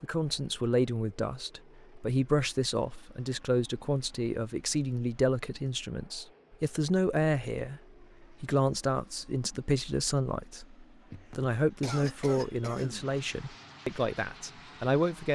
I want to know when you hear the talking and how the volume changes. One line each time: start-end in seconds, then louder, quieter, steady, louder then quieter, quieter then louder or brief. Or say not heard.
0.0-15.2 steady.